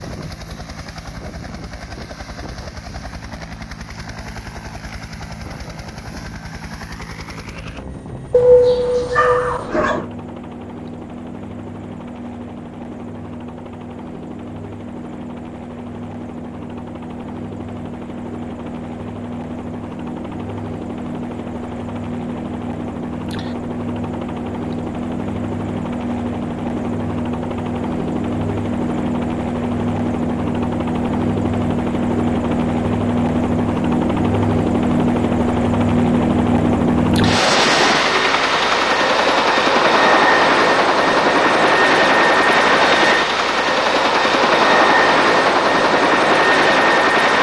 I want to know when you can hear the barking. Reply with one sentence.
You can hear the barking from 8.3 to 10.1 s.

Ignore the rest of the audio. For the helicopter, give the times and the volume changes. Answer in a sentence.
The helicopter can be heard from 0.0 to 47.3 s, getting louder.